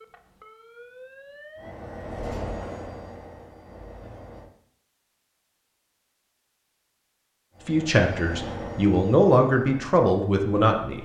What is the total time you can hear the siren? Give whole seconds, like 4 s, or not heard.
2 s.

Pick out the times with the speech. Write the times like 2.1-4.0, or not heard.
7.7-11.0.